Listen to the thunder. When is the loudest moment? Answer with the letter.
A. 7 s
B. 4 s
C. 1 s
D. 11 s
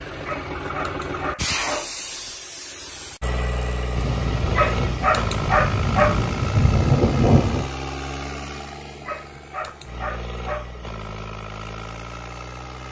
A.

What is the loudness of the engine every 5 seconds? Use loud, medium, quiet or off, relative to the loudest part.
loud, loud, medium.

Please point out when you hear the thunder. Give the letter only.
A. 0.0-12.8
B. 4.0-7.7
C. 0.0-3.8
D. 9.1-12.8
B.